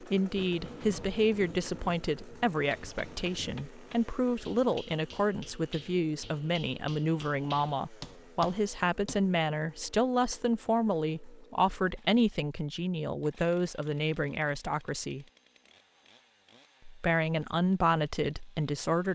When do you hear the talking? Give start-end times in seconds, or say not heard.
0.0-15.2, 16.9-19.1.